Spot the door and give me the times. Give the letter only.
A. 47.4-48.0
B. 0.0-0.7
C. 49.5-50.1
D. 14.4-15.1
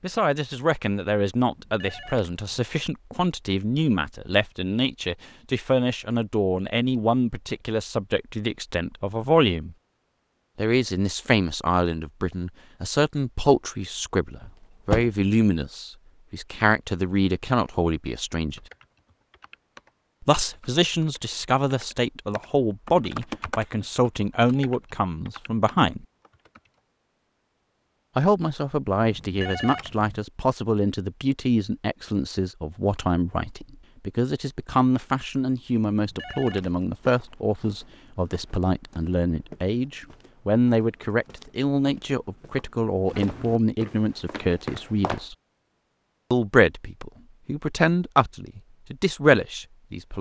D.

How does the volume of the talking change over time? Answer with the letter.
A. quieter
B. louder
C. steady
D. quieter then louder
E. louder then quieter
C.